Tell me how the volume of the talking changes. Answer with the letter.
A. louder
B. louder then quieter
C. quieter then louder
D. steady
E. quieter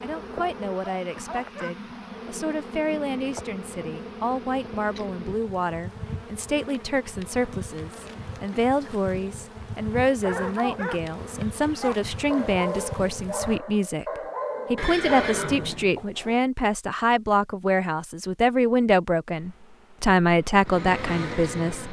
A.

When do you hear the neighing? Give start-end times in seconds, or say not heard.
14.8-16.4.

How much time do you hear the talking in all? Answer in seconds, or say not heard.
22 s.